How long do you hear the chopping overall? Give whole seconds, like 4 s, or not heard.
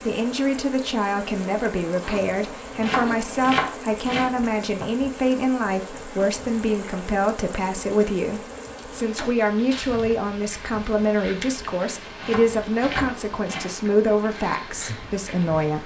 3 s.